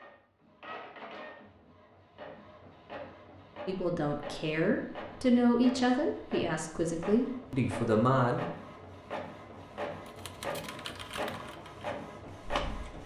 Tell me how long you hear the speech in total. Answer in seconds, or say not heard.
5 s.